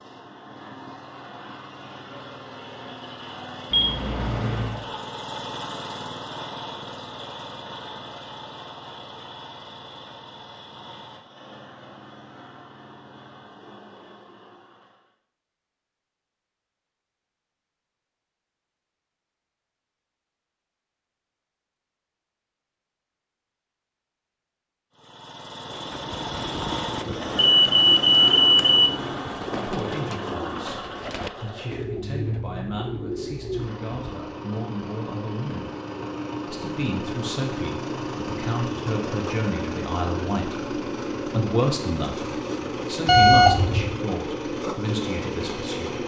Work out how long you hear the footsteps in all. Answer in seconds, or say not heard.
not heard.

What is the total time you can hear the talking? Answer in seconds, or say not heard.
16 s.